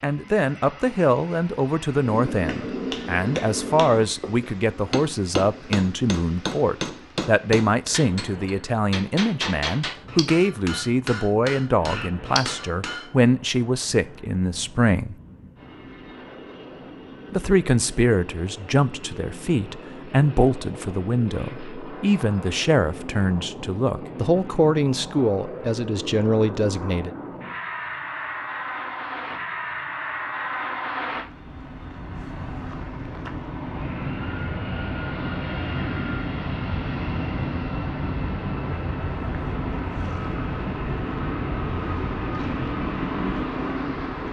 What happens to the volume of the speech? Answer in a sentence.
The loudness of the speech stays about the same.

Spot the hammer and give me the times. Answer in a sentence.
You can hear the hammer from 1.9 to 13.1 s.